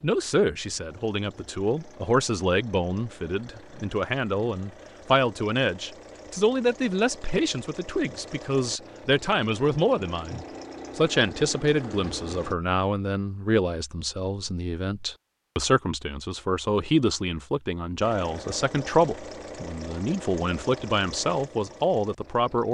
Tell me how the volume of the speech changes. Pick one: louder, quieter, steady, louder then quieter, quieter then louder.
steady.